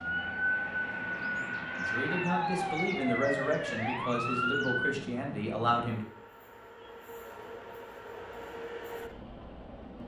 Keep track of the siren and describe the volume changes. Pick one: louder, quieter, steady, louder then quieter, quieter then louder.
steady.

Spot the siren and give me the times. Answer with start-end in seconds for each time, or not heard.
0.0-5.0.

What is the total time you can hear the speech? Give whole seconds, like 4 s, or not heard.
4 s.